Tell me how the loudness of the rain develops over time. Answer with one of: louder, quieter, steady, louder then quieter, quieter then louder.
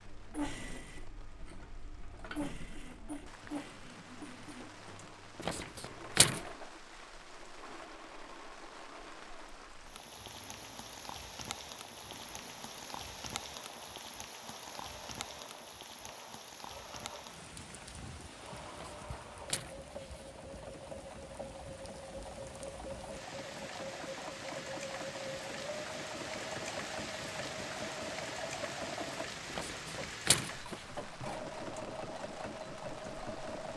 louder.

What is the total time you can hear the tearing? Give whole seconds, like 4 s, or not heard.
4 s.